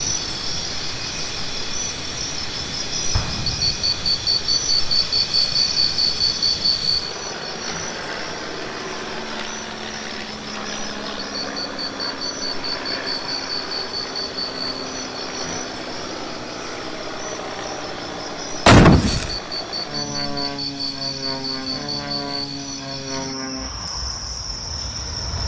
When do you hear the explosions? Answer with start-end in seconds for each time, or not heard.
3.1-4.2, 18.6-19.4.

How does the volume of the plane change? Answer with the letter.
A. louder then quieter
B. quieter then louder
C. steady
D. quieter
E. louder
E.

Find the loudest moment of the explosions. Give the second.
19 s.